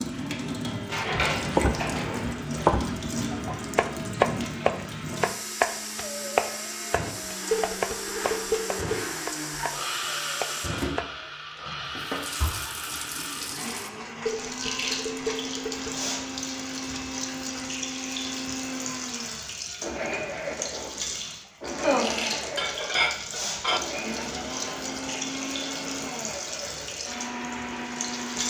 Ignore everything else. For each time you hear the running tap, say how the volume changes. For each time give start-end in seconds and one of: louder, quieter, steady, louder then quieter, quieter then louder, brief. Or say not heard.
0.0-28.4 steady.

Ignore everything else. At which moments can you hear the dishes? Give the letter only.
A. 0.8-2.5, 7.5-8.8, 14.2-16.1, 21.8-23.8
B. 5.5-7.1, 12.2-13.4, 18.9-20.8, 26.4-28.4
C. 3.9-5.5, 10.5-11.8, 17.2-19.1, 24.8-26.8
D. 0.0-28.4
A.